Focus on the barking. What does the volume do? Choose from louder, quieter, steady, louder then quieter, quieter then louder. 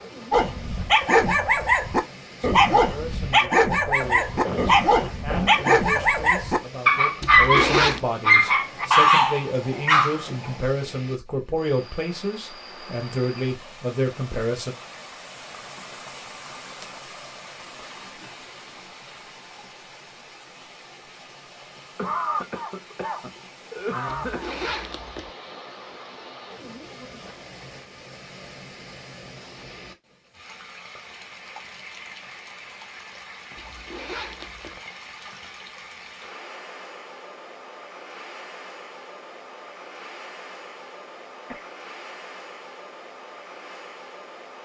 steady.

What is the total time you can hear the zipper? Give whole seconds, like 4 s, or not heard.
3 s.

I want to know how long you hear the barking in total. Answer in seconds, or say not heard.
10 s.